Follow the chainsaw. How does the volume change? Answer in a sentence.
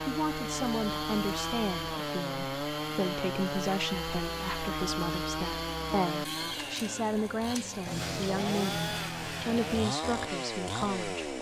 The loudness of the chainsaw stays about the same.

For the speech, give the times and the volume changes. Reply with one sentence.
The speech can be heard from 0.1 to 11.2 s, at a steady volume.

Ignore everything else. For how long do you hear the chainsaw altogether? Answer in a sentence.
You can hear the chainsaw for 11 seconds altogether.